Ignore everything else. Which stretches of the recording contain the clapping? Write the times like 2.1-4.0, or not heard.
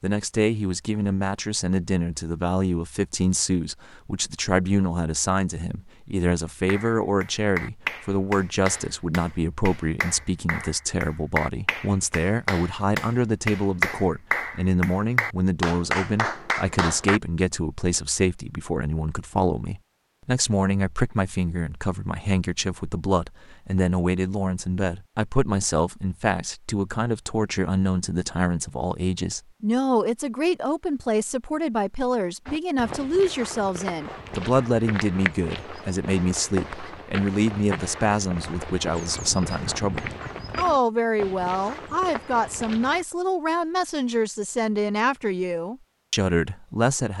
6.7-17.2.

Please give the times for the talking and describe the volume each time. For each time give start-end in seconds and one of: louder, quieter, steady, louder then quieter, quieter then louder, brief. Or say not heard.
0.0-47.1 steady.